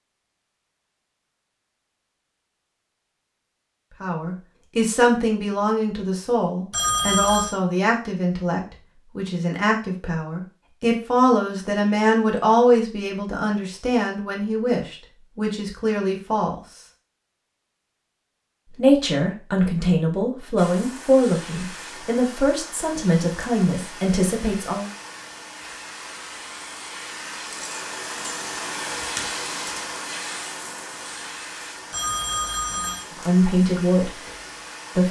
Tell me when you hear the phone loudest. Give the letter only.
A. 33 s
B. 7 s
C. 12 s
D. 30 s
B.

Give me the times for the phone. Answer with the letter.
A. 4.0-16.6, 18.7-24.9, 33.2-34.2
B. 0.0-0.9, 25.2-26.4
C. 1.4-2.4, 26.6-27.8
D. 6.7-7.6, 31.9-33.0
D.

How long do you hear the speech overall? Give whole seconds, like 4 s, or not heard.
20 s.